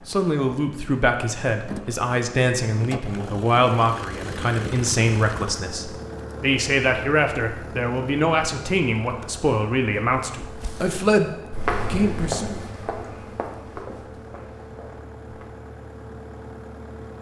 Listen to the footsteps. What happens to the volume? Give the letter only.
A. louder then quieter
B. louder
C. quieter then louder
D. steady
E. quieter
E.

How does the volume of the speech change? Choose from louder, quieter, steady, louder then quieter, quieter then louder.
steady.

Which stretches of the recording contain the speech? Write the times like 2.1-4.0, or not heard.
0.1-12.6.